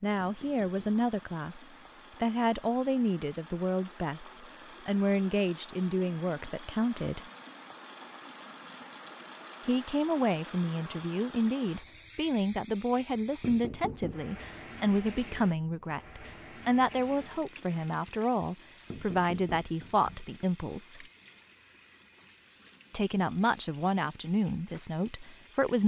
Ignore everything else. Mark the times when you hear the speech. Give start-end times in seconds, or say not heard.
0.0-7.2, 9.7-21.1, 22.9-25.8.